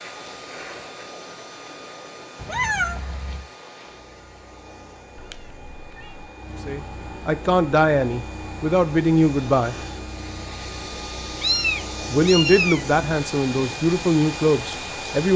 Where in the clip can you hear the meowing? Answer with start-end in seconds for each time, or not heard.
2.4-3.5, 5.2-6.3, 11.4-12.8.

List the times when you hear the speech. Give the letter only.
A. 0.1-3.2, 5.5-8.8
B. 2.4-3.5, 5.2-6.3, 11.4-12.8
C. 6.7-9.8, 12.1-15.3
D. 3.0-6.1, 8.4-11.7
C.